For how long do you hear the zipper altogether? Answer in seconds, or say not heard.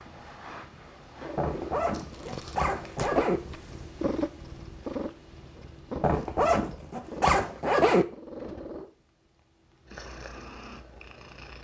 4 s.